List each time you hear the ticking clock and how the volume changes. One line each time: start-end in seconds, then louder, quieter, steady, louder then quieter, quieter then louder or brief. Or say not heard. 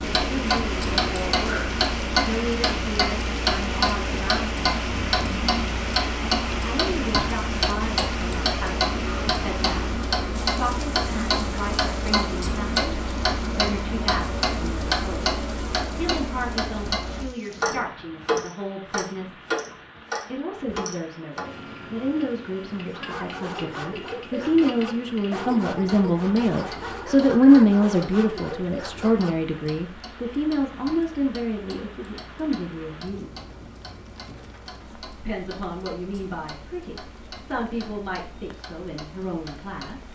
0.0-40.1 quieter.